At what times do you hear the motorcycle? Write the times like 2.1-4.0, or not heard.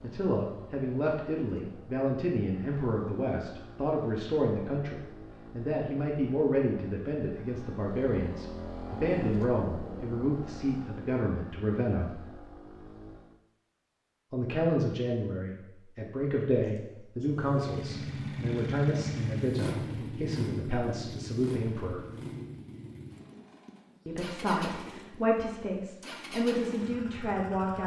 0.0-13.4, 17.2-27.8.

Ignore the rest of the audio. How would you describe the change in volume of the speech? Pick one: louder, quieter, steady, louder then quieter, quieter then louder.
steady.